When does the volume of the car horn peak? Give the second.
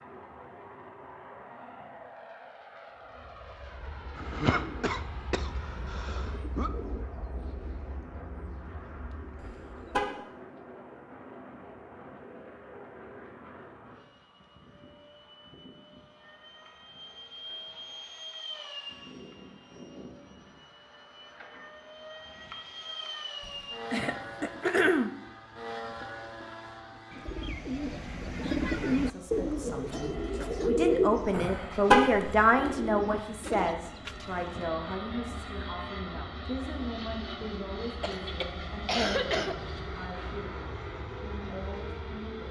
32 s.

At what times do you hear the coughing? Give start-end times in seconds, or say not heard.
4.2-6.7, 23.4-25.1, 38.0-39.5.